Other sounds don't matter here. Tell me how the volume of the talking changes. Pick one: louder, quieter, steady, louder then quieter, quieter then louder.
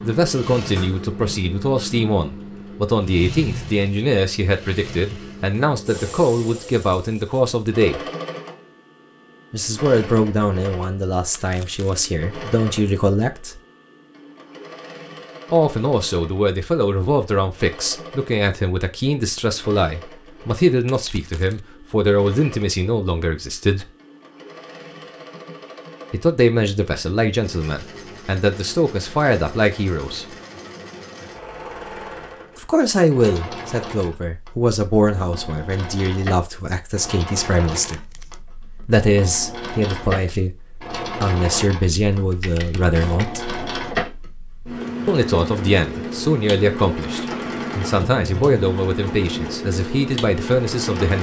steady.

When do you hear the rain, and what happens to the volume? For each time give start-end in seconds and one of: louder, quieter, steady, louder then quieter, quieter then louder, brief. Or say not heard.
not heard.